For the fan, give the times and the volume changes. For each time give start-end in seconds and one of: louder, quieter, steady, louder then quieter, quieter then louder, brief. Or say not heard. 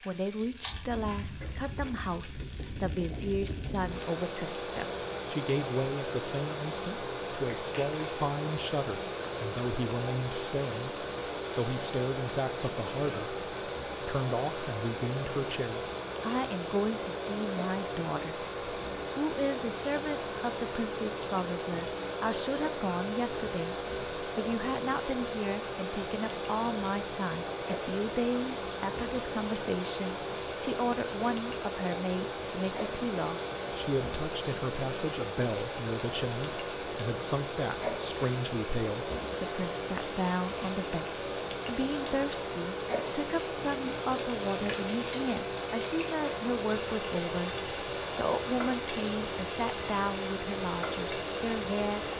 0.0-52.1 steady.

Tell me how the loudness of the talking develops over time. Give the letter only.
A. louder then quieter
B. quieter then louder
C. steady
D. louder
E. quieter
C.